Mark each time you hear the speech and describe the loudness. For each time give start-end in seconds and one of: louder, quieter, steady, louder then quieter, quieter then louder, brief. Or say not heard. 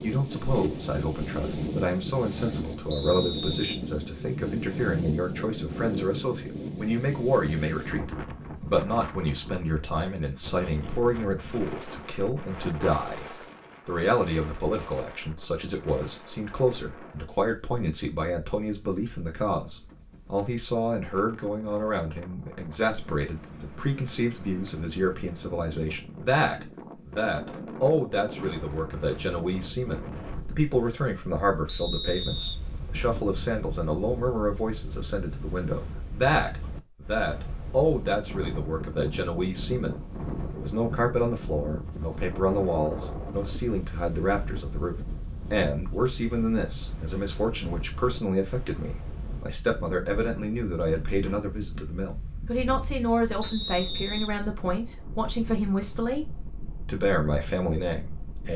0.0-56.2 steady
56.9-58.5 brief.